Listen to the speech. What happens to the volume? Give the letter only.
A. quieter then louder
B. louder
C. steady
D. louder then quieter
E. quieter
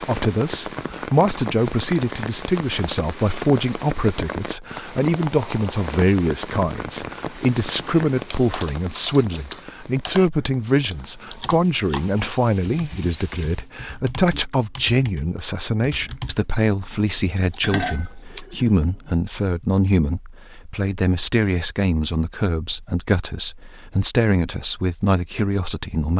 C.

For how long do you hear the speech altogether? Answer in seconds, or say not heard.
26 s.